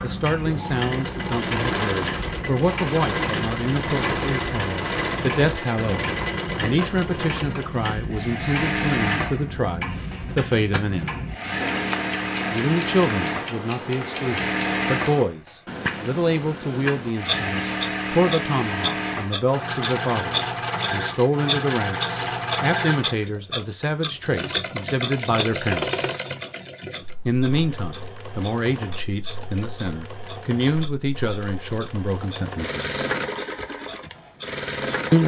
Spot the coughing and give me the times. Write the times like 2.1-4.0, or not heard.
10.2-11.1.